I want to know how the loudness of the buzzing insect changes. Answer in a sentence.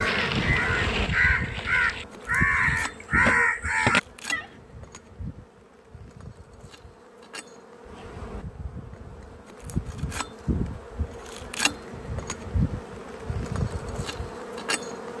The loudness of the buzzing insect goes down, then up.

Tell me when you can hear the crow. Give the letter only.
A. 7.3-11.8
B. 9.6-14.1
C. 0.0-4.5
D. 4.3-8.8
C.